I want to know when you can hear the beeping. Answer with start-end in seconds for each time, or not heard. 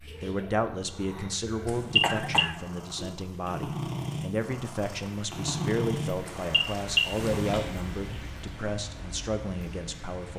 1.6-2.5, 6.2-7.2.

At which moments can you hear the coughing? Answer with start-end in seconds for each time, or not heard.
2.0-3.2.